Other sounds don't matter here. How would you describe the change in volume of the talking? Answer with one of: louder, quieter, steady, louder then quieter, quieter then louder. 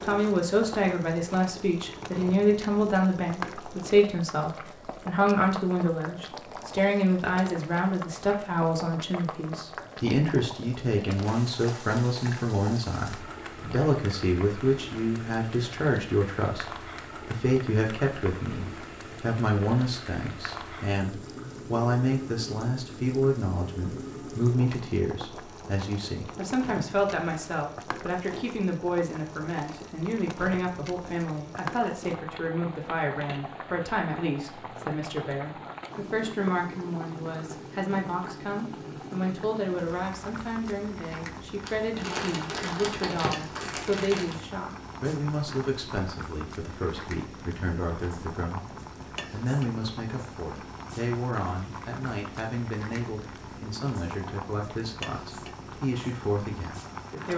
quieter.